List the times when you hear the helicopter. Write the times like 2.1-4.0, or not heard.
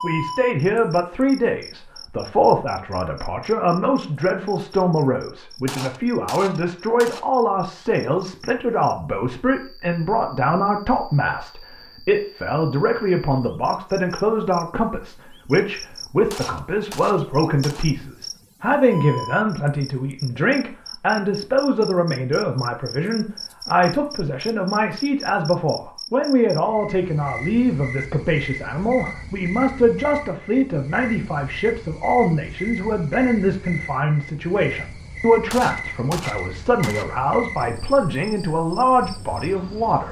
not heard.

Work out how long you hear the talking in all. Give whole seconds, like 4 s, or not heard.
40 s.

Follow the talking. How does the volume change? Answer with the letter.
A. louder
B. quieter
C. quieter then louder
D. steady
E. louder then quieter
D.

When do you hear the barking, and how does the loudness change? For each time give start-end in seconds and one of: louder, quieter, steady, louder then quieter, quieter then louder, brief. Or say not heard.
not heard.